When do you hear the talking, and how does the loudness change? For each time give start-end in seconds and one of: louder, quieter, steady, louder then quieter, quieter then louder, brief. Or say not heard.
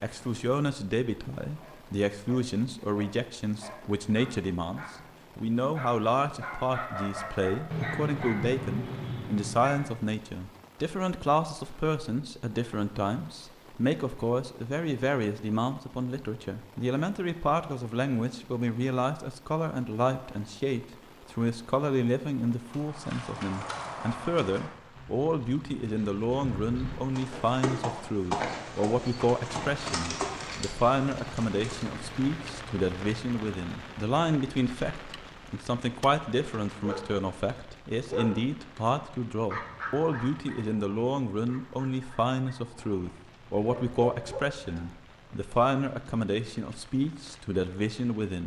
0.0-48.4 steady.